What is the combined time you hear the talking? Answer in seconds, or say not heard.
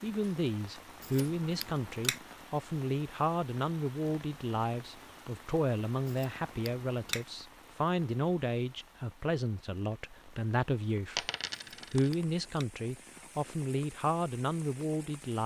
15 s.